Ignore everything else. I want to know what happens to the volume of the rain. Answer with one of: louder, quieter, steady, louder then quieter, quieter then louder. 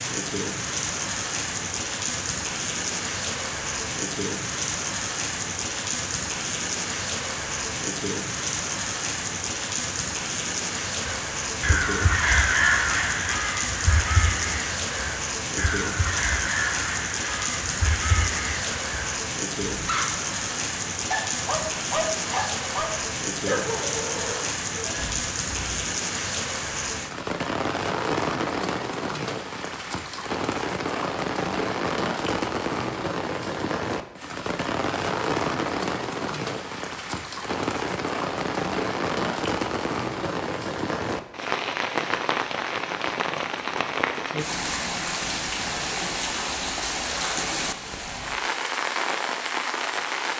steady.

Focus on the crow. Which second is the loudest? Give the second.
13 s.